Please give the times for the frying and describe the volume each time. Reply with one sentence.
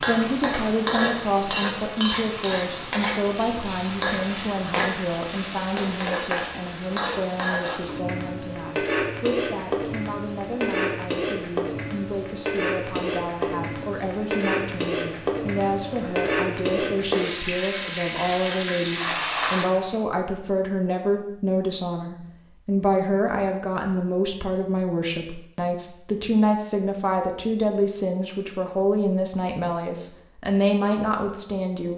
The frying can be heard from 0.0 to 19.9 s, at a steady volume.